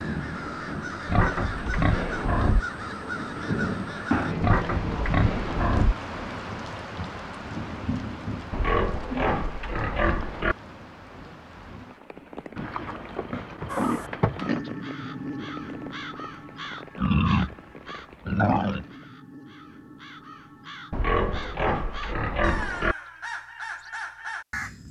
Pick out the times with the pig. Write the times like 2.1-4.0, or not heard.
1.1-2.6, 4.4-6.0, 8.5-10.6, 12.6-14.7, 16.9-18.9, 20.9-22.9.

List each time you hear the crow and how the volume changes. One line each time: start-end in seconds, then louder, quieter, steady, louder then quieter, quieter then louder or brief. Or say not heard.
0.0-4.3 steady
13.7-24.8 quieter then louder.